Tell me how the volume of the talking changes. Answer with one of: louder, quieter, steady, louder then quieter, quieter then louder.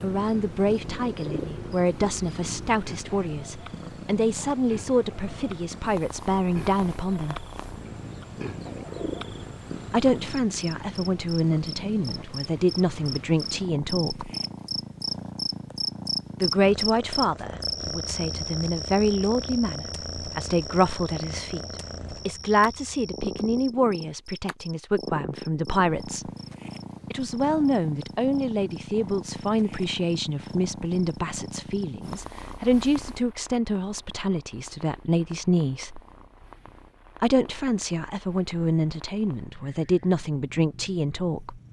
steady.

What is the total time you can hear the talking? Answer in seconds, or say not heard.
35 s.